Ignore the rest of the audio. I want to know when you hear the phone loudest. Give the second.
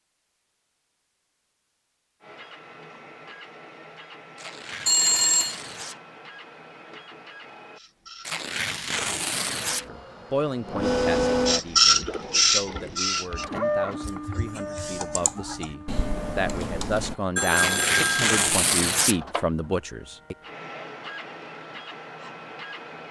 5 s.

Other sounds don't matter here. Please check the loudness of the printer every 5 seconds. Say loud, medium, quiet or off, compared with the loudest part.
quiet, quiet, loud, quiet, quiet.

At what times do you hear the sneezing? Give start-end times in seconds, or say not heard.
not heard.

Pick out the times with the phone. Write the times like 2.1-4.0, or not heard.
4.8-5.5, 17.4-18.4.